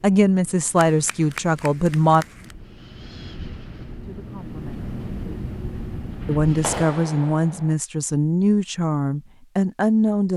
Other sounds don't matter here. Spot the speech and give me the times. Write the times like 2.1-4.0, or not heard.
0.0-2.2, 4.0-5.0, 6.2-10.3.